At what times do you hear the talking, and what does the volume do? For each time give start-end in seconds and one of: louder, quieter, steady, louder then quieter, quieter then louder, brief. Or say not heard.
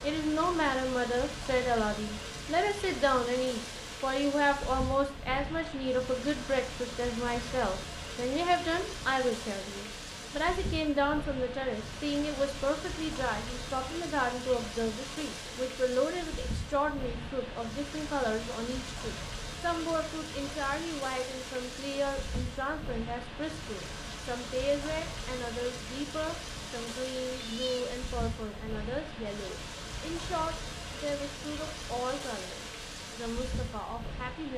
0.0-34.5 quieter.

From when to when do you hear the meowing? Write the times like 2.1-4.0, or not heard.
27.3-27.9.